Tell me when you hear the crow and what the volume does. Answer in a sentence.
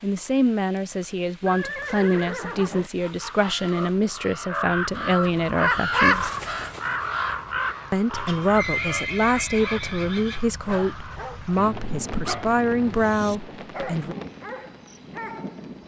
The crow can be heard from 3.0 to 13.3 s, getting louder then quieter.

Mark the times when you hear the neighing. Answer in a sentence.
You can hear the neighing from 1.4 to 2.9 s and from 8.2 to 10.4 s.